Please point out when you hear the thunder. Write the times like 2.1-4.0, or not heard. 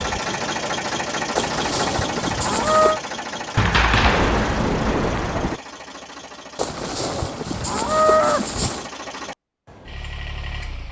3.5-5.6.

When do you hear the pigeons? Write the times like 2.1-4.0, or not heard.
not heard.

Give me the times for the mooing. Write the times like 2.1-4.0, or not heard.
1.4-3.0, 6.5-8.9.